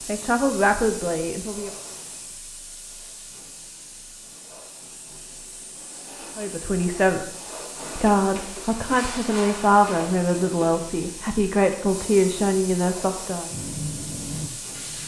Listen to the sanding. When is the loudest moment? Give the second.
14 s.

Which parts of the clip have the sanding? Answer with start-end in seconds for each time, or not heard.
13.5-15.0.